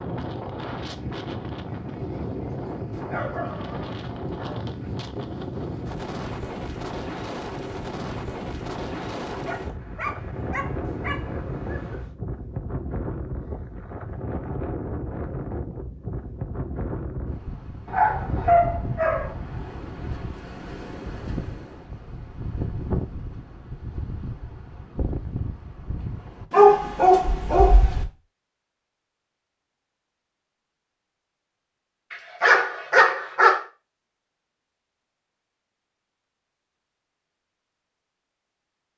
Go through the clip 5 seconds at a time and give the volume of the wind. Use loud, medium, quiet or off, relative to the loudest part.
loud, loud, loud, loud, loud, loud, off, off.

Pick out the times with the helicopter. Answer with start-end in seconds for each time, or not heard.
not heard.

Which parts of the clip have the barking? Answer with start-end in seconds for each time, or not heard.
2.9-4.7, 9.3-12.1, 17.9-19.4, 26.5-28.1, 32.1-33.6.